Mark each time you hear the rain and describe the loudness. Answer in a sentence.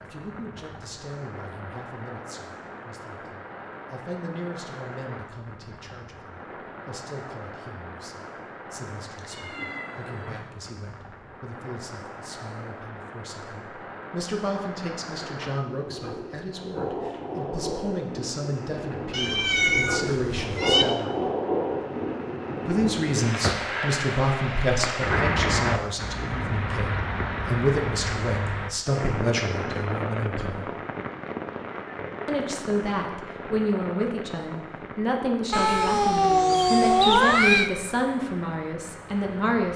You can hear the rain from 0.0 to 39.7 s, getting louder then quieter.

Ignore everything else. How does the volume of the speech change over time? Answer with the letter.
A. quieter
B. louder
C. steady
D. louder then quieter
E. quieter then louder
B.